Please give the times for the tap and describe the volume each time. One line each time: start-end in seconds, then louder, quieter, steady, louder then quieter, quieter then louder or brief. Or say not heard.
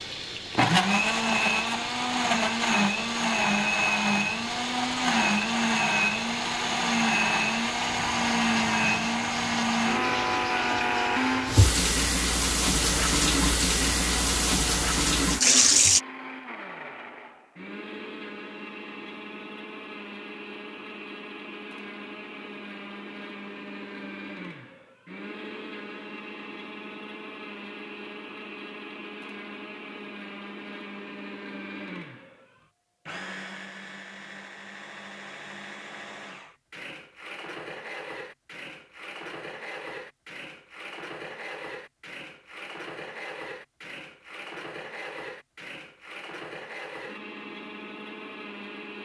0.0-16.0 louder.